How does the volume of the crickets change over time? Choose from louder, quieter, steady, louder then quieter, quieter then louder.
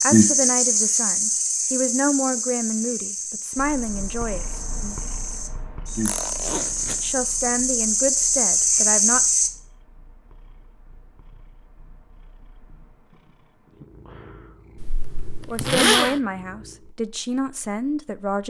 quieter then louder.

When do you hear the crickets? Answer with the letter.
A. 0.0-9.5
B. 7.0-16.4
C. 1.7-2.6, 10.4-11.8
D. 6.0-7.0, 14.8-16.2
A.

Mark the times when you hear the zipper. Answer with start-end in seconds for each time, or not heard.
6.0-7.0, 14.8-16.2.